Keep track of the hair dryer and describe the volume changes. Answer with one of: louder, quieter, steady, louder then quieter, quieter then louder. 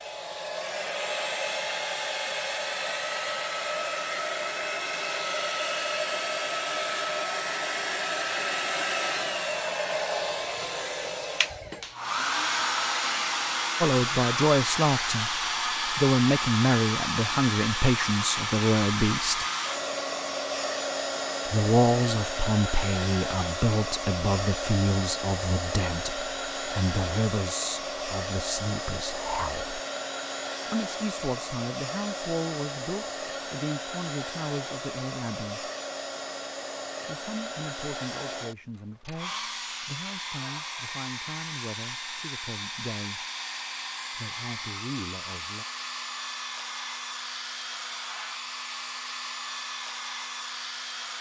quieter.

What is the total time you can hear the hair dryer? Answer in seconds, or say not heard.
51 s.